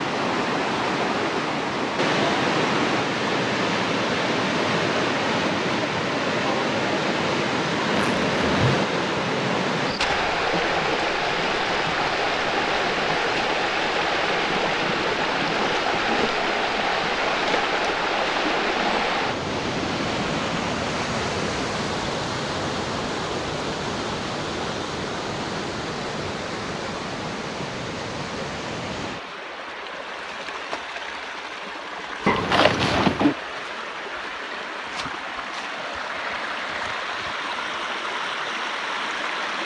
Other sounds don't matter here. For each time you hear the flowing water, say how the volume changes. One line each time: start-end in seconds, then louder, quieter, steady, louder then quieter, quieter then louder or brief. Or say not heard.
0.0-39.6 quieter.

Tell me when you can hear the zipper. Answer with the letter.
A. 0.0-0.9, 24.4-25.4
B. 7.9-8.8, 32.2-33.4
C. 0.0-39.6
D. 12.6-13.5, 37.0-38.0
B.